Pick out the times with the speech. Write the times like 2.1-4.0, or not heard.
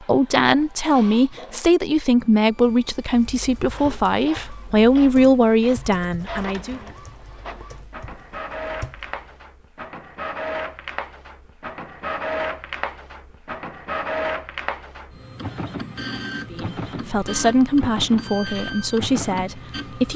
0.1-6.8, 16.5-20.1.